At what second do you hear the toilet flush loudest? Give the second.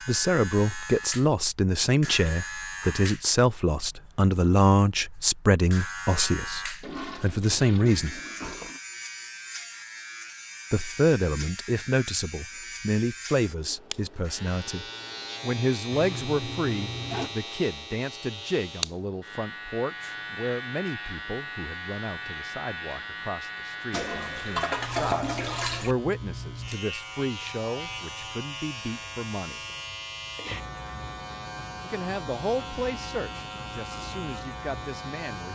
25 s.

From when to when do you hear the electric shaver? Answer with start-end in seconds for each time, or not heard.
0.0-35.4.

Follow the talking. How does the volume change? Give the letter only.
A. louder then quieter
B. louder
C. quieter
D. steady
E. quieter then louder
C.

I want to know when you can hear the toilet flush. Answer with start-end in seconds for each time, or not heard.
6.8-8.8, 15.9-17.3, 23.9-25.9.